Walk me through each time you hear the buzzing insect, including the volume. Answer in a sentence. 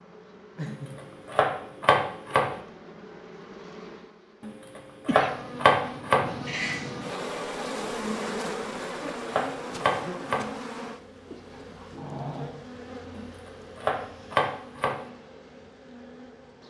You can hear the buzzing insect from 0.0 to 16.6 s, getting louder then quieter.